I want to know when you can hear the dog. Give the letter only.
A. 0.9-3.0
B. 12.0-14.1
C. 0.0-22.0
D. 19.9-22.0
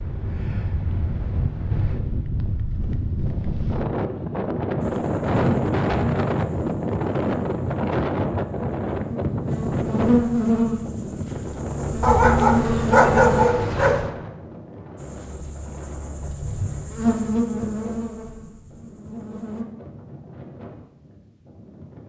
B.